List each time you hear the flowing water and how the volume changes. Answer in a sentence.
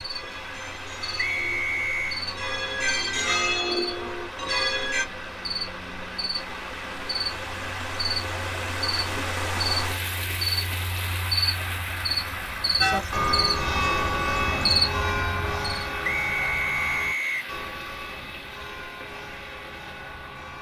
The flowing water can be heard from 0.0 to 20.5 s, getting louder then quieter.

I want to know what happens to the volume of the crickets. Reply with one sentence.
The volume of the crickets goes up.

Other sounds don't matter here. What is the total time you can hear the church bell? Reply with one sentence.
You can hear the church bell for 13 seconds altogether.